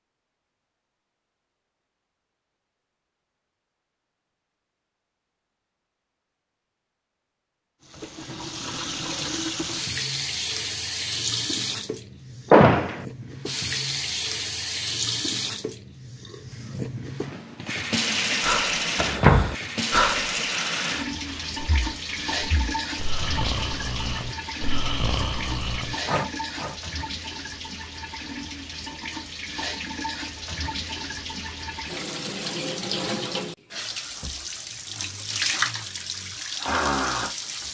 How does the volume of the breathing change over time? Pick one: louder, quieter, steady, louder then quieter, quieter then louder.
quieter then louder.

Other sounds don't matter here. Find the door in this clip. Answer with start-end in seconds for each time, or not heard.
12.5-13.1, 18.9-19.6.